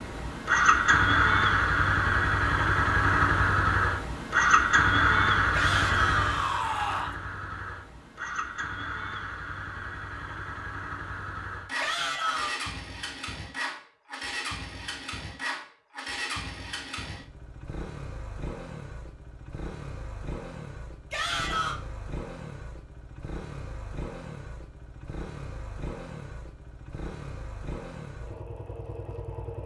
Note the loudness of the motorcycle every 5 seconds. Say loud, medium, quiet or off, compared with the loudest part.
loud, medium, quiet, quiet, quiet, quiet.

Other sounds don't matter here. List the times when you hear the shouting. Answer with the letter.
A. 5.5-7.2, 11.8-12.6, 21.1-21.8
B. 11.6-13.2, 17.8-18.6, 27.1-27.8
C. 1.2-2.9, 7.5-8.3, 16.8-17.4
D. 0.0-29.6
A.